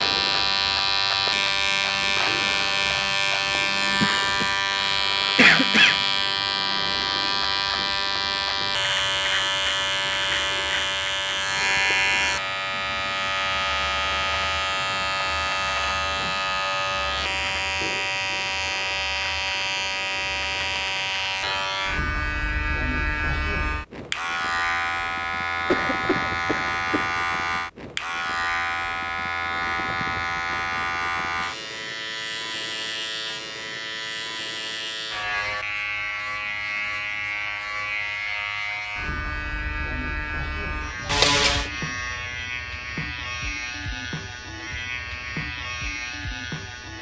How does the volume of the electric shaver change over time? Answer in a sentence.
The loudness of the electric shaver goes down.